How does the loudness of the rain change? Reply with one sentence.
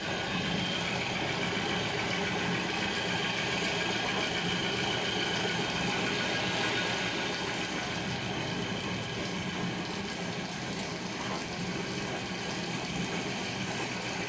The loudness of the rain stays about the same.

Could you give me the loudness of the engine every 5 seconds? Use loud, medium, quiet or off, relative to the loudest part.
loud, loud, medium.